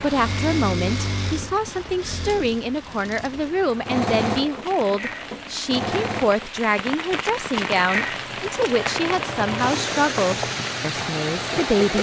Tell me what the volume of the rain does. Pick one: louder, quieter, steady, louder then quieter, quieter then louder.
louder.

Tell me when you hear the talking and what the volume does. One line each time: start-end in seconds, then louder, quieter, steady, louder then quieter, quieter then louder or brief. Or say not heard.
0.0-11.9 steady.